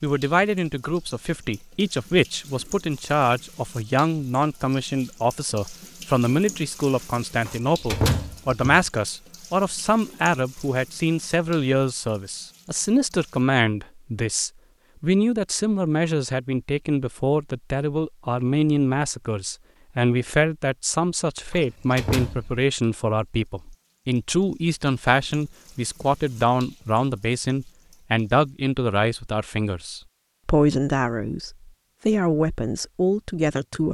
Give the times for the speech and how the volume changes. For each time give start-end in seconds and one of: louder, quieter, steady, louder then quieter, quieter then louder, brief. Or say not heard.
0.0-33.8 steady.